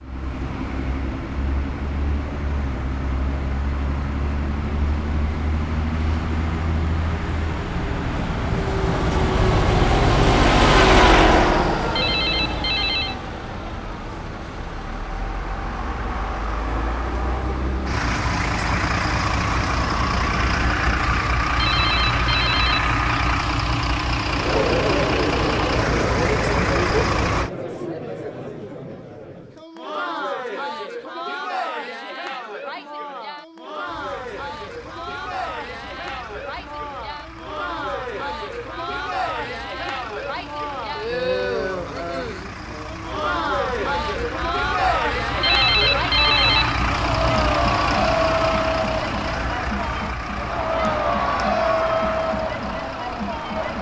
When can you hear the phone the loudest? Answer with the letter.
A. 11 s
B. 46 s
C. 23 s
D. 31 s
B.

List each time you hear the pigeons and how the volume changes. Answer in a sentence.
The pigeons can't be heard in this clip.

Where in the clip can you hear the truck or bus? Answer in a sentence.
You can hear the truck or bus from 0.0 to 27.5 s and from 33.9 to 53.7 s.